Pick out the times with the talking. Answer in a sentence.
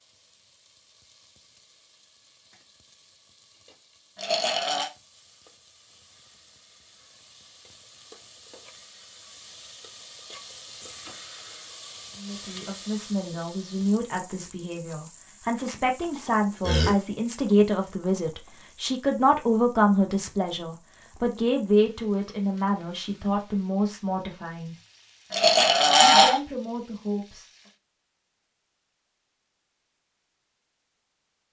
The talking can be heard from 12.2 to 24.8 s and from 26.0 to 27.5 s.